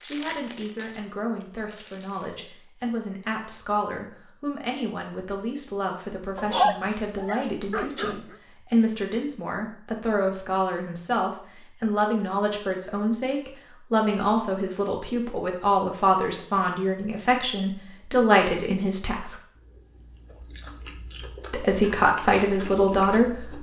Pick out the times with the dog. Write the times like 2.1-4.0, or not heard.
6.3-8.3.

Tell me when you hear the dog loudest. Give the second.
7 s.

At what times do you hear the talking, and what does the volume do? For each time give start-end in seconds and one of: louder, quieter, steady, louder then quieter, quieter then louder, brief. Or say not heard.
0.0-19.4 louder
21.5-23.5 brief.